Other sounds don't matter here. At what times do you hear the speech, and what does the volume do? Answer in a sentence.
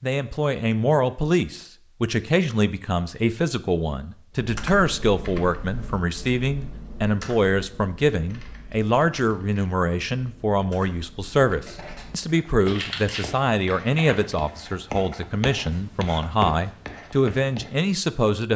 The speech can be heard from 0.0 to 18.5 s, at a steady volume.